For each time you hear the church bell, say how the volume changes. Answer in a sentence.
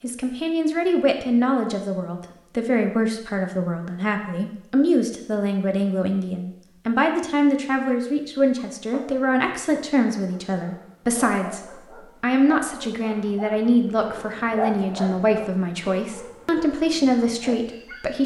You can't hear the church bell here.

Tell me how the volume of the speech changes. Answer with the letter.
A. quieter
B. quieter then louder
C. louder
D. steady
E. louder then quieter
D.